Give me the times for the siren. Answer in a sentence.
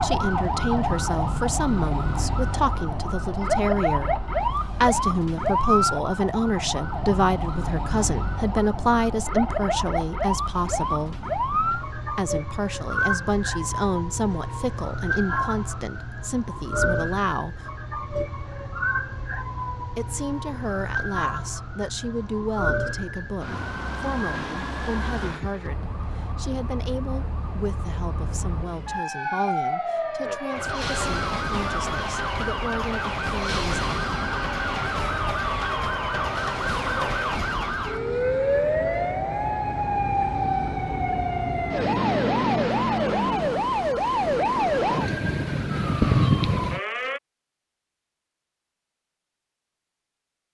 The siren can be heard from 0.0 to 47.2 s.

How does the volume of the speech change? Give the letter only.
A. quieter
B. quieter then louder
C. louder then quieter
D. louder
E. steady
A.